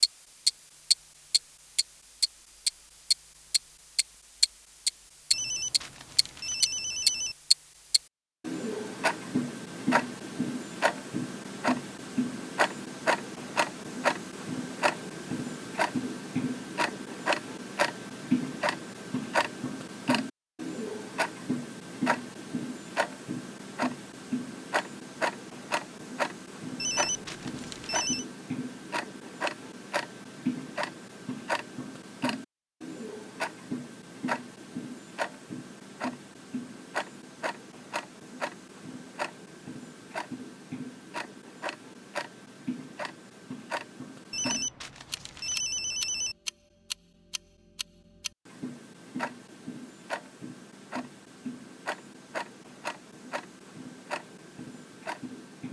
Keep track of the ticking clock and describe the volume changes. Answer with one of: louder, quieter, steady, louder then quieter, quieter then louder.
quieter.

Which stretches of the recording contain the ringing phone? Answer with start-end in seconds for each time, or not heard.
5.3-7.3, 26.8-28.2, 44.3-46.4.